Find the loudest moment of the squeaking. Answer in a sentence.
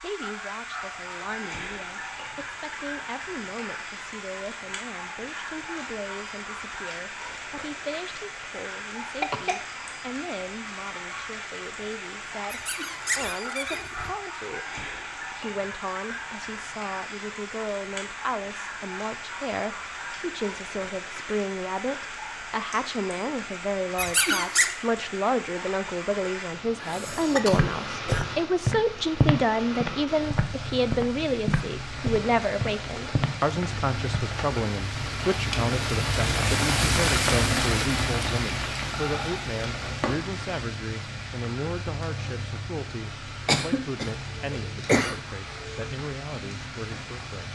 The volume of the squeaking peaks at 24 seconds.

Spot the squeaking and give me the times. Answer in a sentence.
The squeaking can be heard from 12.5 to 14.1 s and from 23.9 to 24.8 s.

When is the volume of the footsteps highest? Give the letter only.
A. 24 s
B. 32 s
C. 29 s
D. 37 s
C.